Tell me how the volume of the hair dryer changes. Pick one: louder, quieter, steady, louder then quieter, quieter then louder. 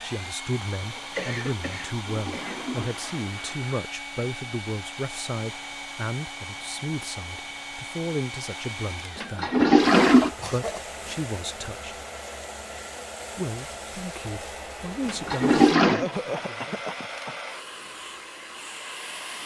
steady.